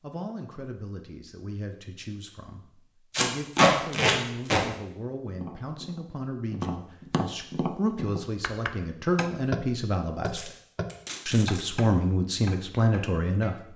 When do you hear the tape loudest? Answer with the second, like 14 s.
4 s.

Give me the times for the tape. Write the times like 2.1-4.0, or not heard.
3.1-4.6, 10.2-11.7.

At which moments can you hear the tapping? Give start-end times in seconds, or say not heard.
5.3-13.6.